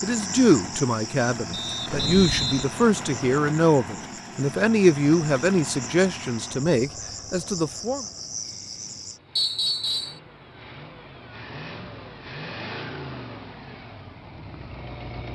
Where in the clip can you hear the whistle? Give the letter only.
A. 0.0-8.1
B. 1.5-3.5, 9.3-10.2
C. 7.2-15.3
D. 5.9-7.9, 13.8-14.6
B.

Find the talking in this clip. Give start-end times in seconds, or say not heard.
0.0-8.1.